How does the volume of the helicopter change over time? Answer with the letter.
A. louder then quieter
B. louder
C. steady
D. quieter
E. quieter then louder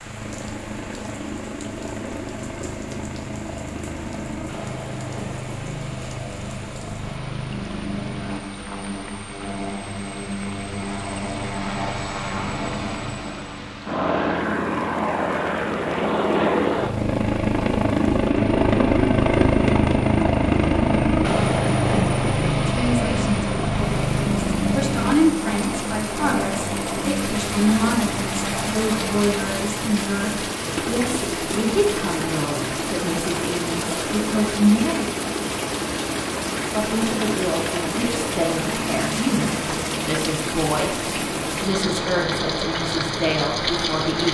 A.